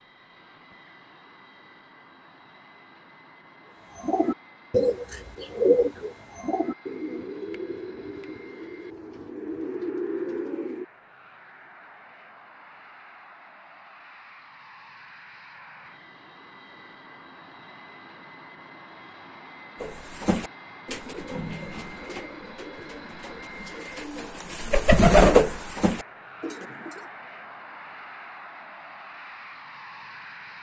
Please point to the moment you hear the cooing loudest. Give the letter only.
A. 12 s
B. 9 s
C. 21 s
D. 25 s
D.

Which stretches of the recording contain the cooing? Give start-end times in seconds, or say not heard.
4.0-10.8, 19.8-26.9.